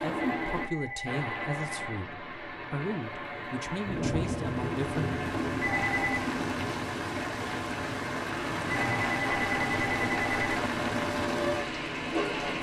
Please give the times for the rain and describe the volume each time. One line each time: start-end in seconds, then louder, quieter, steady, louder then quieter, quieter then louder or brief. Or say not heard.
0.0-12.5 louder.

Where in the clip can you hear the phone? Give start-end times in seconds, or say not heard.
0.5-2.0, 5.6-6.3, 8.7-10.6.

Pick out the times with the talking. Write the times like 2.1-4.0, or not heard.
0.0-5.1.